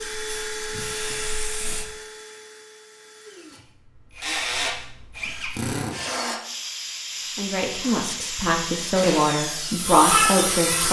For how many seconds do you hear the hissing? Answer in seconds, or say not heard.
6 s.